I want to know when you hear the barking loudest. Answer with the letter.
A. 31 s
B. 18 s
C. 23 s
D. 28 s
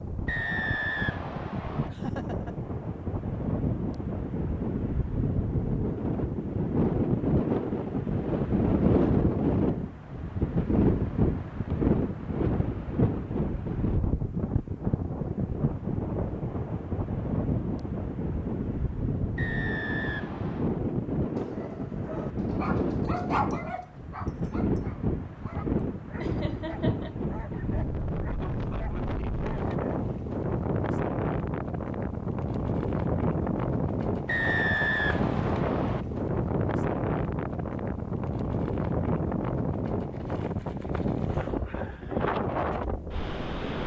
C.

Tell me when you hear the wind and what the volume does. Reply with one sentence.
The wind can be heard from 0.0 to 43.8 s, at a steady volume.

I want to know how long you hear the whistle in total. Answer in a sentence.
The whistle can be heard for 5 seconds in total.